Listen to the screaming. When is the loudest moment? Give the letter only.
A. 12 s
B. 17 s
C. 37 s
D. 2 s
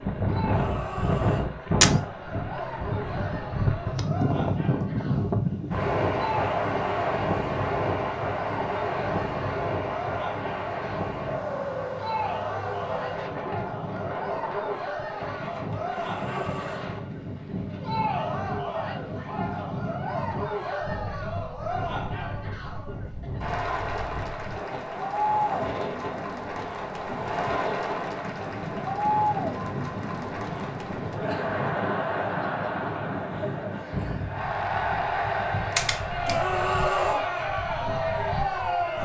C.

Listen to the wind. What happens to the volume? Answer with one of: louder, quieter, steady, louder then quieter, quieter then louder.
quieter.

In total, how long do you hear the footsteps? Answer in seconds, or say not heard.
not heard.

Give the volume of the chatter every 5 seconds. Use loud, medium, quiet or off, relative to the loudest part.
medium, medium, medium, medium, medium, loud, loud, loud.